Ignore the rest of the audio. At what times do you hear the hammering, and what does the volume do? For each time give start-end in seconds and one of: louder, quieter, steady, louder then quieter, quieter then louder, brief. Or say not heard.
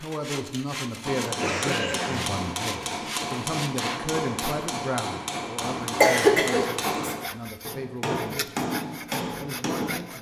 1.0-10.0 steady.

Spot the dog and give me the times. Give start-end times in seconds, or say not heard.
not heard.